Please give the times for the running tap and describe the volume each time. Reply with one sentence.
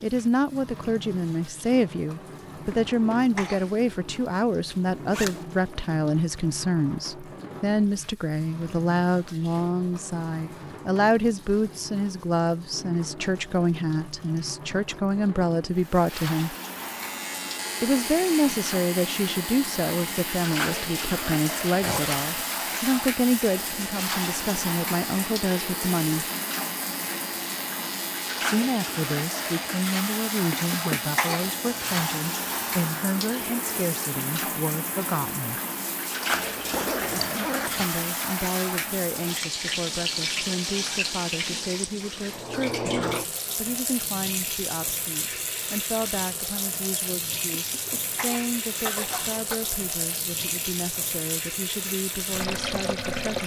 The running tap can be heard from 0.0 to 53.4 s, getting louder.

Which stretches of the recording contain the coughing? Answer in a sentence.
The coughing can be heard from 2.7 to 3.7 s, from 30.5 to 31.6 s and from 47.6 to 49.6 s.